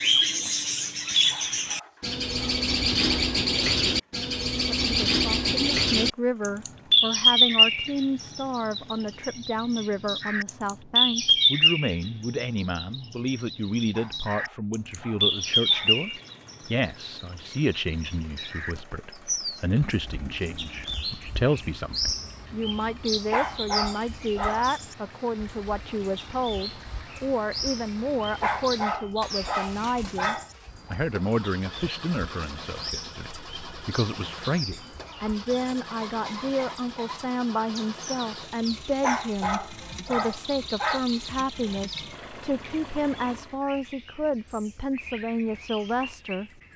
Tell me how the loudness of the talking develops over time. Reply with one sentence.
The loudness of the talking stays about the same.